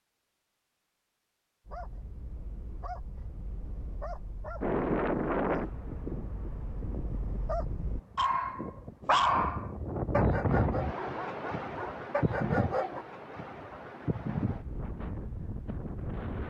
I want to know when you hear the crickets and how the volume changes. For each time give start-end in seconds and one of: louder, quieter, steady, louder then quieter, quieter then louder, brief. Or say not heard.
not heard.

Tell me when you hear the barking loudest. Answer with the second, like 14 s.
9 s.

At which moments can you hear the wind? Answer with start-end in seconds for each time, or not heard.
4.6-16.4.